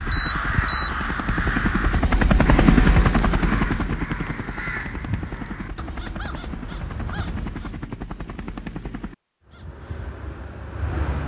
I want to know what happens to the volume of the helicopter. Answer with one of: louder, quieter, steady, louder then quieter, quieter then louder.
louder then quieter.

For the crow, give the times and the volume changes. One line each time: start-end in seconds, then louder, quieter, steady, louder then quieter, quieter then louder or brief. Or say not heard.
0.0-7.8 quieter
9.4-11.2 brief.